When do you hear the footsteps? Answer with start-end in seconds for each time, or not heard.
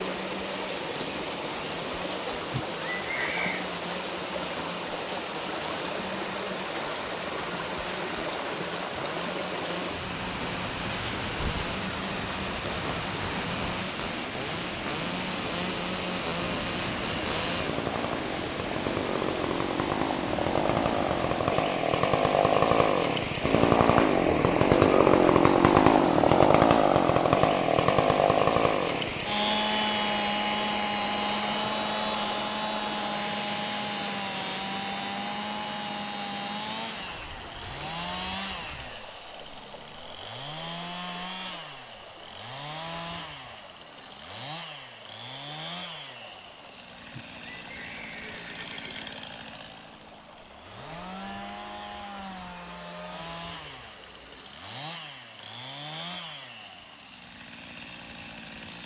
not heard.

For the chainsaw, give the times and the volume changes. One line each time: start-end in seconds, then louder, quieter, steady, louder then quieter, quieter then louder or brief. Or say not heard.
0.0-58.8 louder then quieter.